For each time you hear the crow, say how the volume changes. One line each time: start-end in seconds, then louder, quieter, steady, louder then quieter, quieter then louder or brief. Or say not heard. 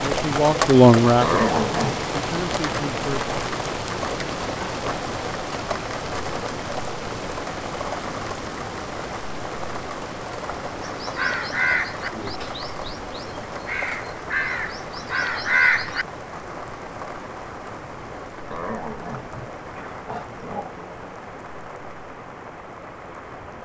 10.8-16.1 quieter then louder.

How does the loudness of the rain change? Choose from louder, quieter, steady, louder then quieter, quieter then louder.
quieter.